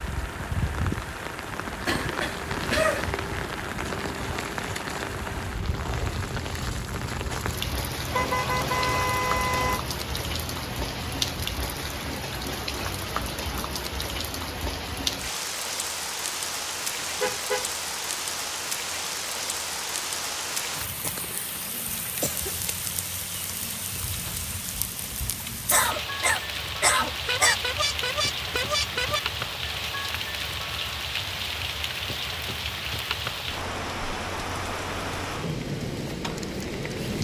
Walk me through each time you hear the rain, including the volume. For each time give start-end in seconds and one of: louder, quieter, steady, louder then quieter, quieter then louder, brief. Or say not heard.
0.0-37.1 steady.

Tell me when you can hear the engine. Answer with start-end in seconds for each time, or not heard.
0.0-11.4.